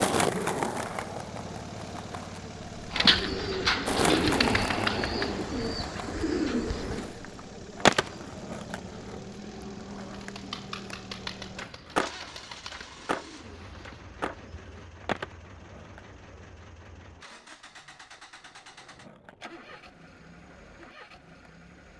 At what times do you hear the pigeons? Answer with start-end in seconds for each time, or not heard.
2.9-14.9.